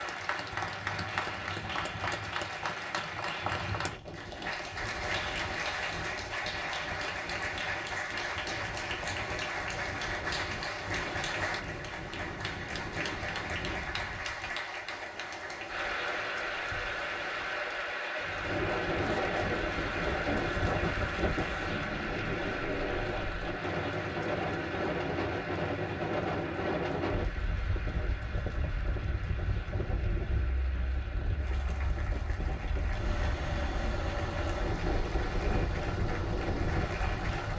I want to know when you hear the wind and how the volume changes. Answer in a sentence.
You can hear the wind from 0.0 to 37.5 s, getting louder.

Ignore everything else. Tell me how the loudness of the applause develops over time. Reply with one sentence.
The loudness of the applause goes down.